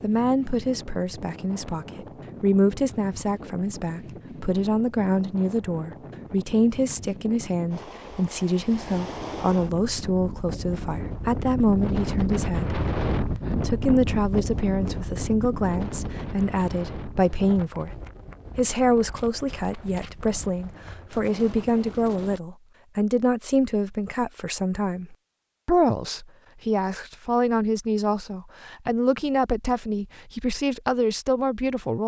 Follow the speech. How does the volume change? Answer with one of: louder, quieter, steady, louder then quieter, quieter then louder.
steady.